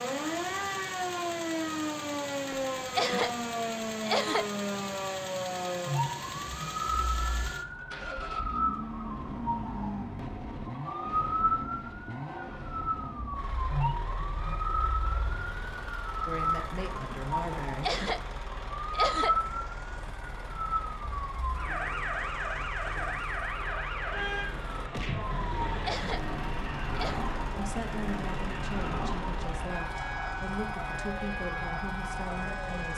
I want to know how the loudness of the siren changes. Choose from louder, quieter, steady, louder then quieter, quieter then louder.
steady.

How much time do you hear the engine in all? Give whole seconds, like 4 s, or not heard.
33 s.